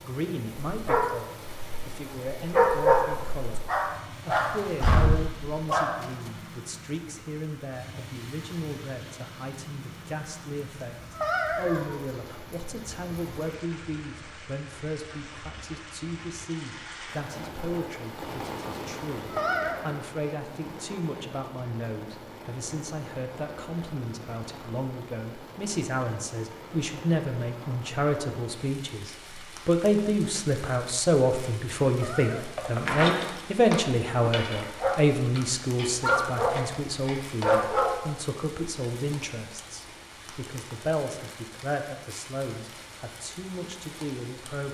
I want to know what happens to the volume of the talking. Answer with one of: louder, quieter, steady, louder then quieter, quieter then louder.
louder then quieter.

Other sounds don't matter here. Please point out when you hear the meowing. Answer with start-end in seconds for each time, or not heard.
11.0-12.1, 19.1-19.9, 31.8-32.5.